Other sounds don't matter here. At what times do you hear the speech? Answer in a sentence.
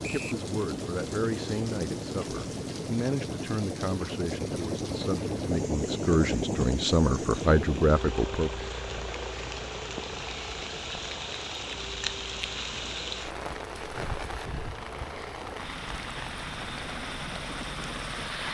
The speech can be heard from 0.0 to 8.5 s.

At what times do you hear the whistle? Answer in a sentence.
You can hear the whistle from 0.0 to 0.5 s.